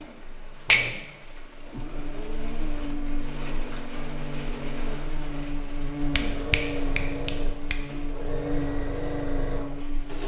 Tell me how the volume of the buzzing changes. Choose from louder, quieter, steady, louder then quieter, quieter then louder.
louder.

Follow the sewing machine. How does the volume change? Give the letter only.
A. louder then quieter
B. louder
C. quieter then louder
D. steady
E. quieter
B.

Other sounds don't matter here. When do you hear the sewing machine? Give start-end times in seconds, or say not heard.
0.0-10.2.